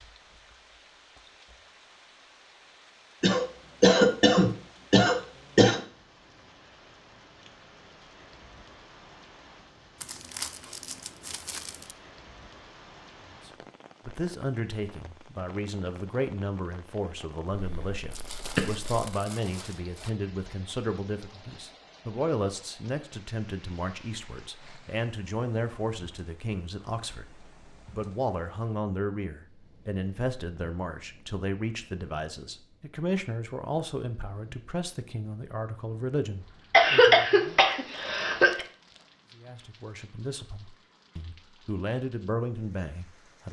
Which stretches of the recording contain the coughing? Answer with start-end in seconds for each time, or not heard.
3.2-5.8, 17.5-18.9, 36.7-38.6.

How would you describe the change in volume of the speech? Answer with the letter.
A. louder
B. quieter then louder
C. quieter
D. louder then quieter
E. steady
E.